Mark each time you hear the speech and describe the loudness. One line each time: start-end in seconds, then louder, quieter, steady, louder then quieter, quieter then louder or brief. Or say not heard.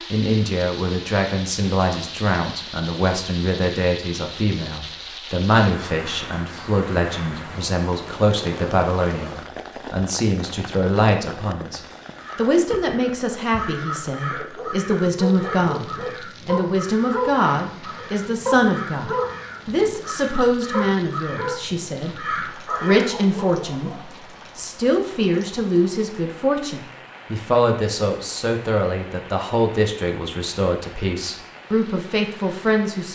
0.1-33.0 steady.